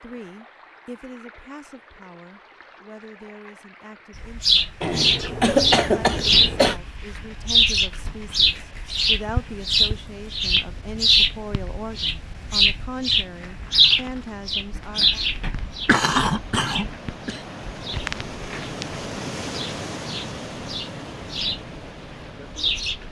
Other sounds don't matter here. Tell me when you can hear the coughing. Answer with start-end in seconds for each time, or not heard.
4.8-6.8, 15.8-17.4.